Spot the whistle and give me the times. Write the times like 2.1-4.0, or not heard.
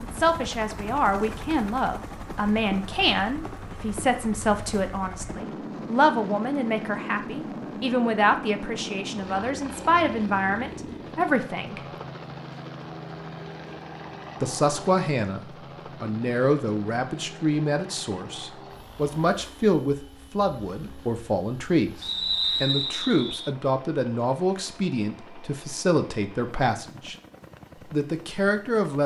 22.0-23.5.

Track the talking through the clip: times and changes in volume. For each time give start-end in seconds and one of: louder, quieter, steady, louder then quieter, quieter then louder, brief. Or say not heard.
0.0-11.8 steady
14.4-27.1 steady
27.9-29.0 brief.